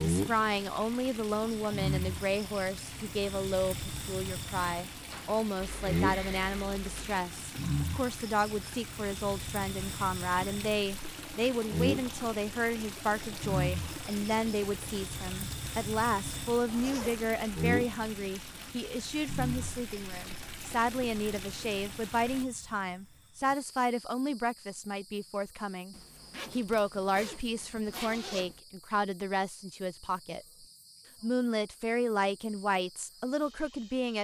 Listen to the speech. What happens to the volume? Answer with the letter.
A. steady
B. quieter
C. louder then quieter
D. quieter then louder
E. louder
A.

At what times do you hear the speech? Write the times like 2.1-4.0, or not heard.
0.0-34.1.